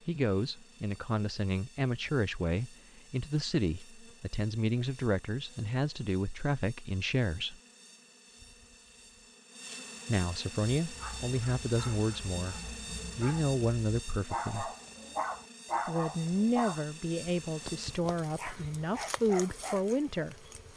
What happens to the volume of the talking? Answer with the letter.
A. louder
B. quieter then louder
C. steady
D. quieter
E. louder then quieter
C.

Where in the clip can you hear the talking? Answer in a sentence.
The talking can be heard from 0.1 to 7.5 s, from 10.1 to 14.7 s and from 15.8 to 20.4 s.